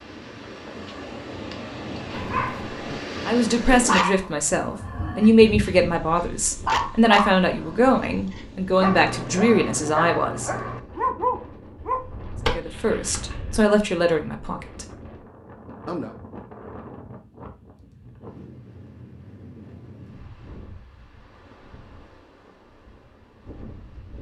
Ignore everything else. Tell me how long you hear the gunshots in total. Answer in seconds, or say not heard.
2 s.